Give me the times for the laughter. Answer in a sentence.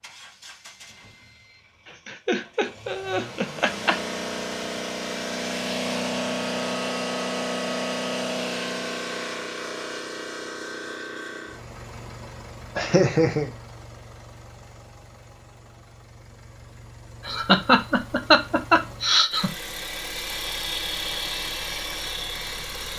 The laughter can be heard from 2.0 to 4.0 s, from 12.8 to 13.5 s and from 17.2 to 19.5 s.